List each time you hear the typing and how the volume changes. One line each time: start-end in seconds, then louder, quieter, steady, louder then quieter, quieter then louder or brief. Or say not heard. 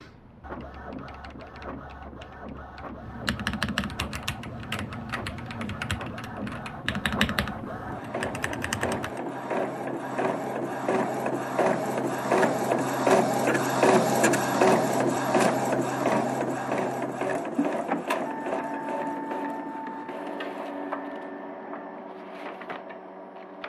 0.0-9.2 louder.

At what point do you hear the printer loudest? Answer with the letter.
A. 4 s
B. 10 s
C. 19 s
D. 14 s
D.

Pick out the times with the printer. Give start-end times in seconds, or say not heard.
0.0-23.6.